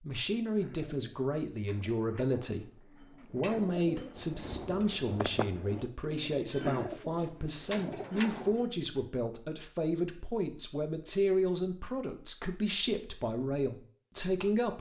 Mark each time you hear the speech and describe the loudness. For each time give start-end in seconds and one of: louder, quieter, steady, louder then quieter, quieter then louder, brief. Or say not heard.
0.0-2.6 brief
3.3-14.7 steady.